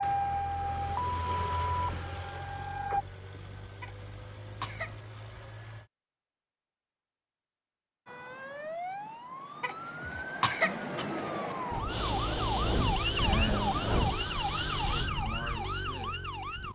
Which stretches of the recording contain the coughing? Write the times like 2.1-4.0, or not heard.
3.8-5.2, 9.6-11.1.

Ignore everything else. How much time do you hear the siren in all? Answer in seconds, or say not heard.
12 s.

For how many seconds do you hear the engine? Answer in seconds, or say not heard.
9 s.